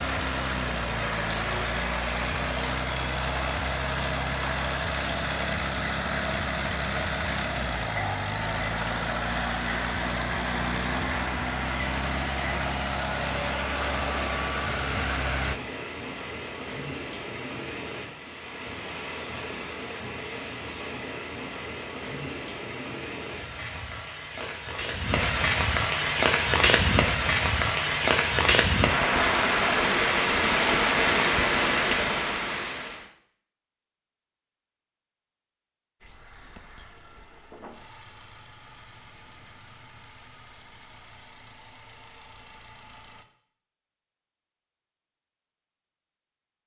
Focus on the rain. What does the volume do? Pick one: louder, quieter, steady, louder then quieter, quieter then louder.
louder.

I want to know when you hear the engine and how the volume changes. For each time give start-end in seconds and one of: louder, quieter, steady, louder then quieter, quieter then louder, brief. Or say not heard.
0.0-15.6 steady
36.0-43.2 steady.